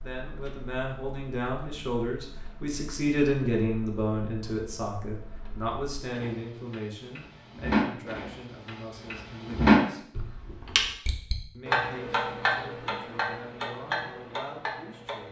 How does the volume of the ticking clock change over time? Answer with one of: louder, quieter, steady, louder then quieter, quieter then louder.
louder then quieter.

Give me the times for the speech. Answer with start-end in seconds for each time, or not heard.
0.0-10.1, 11.5-15.2.